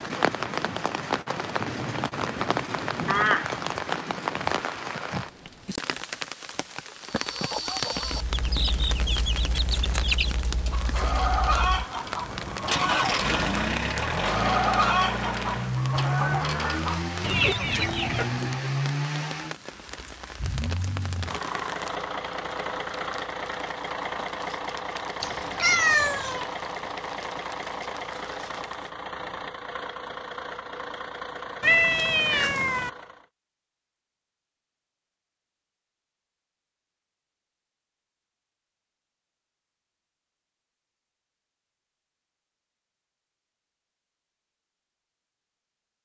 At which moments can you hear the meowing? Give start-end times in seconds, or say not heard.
3.0-3.5, 25.2-26.5, 31.6-32.9.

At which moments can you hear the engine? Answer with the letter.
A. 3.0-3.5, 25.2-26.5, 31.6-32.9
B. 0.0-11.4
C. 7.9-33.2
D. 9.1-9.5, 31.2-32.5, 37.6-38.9
C.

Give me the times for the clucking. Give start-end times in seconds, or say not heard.
7.0-18.5.